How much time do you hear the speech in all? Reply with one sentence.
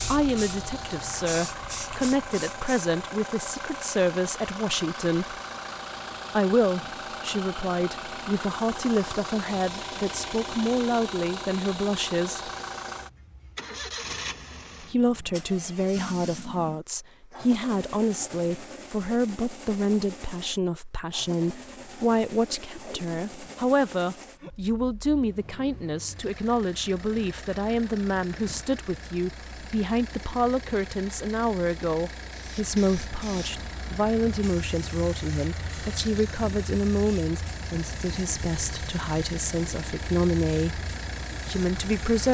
You can hear the speech for 38 seconds altogether.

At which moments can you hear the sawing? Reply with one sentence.
You can't hear the sawing here.